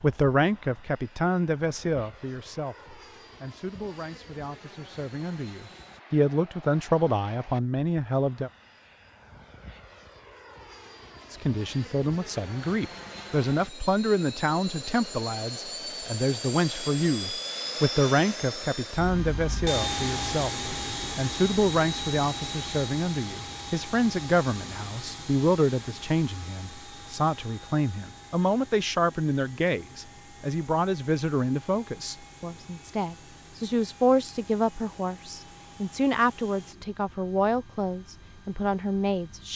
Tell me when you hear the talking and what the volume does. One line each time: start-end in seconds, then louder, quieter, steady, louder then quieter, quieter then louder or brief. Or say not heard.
0.0-8.5 quieter then louder
11.3-39.5 steady.